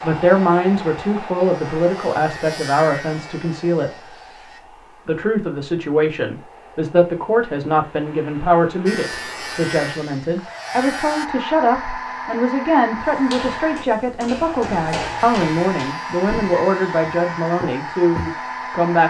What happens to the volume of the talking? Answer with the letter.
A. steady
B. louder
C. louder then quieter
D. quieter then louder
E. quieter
A.